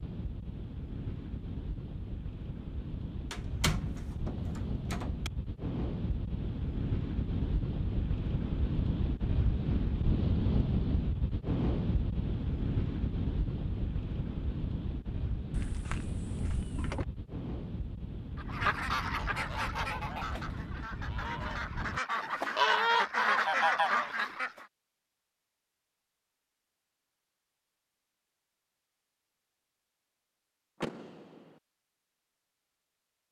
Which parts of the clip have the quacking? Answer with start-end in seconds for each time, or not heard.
18.4-24.6.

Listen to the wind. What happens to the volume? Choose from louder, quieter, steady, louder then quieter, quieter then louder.
louder then quieter.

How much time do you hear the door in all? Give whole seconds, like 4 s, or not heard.
4 s.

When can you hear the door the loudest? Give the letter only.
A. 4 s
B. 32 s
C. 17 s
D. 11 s
A.